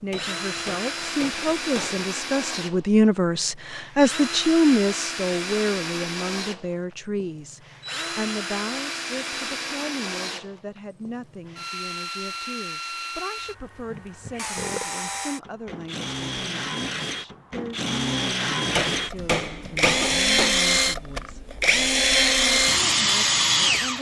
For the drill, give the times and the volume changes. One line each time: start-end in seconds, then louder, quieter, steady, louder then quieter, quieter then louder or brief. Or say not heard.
0.0-23.9 louder.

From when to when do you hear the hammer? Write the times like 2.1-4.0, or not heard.
0.1-2.0, 18.7-20.6.